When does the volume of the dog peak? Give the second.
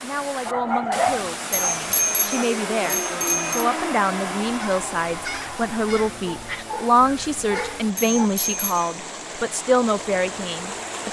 1 s.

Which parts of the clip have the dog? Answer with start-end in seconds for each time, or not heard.
0.5-2.5, 6.2-8.3.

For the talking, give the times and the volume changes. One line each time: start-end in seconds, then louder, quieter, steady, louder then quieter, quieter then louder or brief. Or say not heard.
0.0-11.0 louder.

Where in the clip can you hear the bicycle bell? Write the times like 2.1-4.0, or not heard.
1.7-3.6, 8.0-9.0.